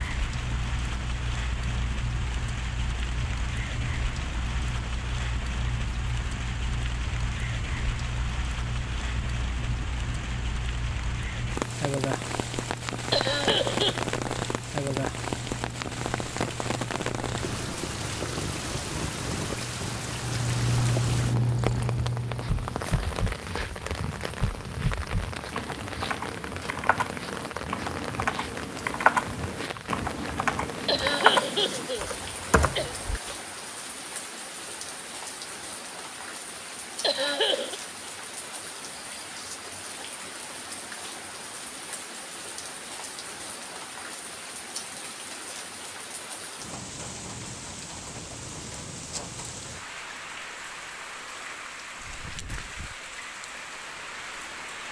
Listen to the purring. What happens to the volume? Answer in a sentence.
The volume of the purring goes up.